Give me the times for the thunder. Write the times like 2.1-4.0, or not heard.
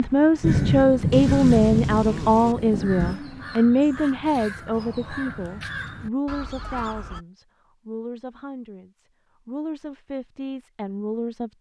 0.4-3.1.